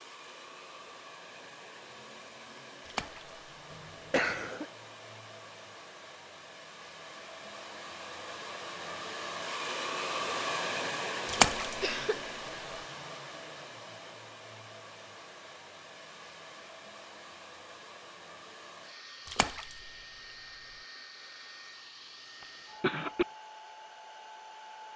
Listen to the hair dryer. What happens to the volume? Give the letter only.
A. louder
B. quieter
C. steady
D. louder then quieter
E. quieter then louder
D.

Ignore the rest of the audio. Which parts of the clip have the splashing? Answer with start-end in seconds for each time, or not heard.
2.9-3.4, 11.2-11.8, 19.2-19.9.